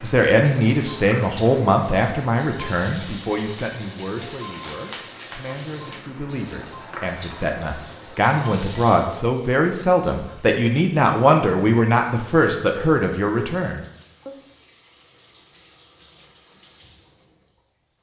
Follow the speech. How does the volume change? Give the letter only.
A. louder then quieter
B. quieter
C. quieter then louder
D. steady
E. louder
C.